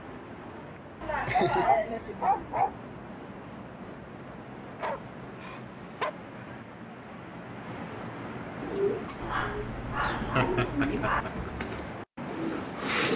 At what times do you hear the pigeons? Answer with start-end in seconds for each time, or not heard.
8.6-13.1.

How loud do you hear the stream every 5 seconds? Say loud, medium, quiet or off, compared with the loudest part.
medium, loud, loud.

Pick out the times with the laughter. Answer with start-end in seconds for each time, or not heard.
1.0-2.6, 10.1-11.5.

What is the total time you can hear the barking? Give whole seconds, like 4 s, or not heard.
5 s.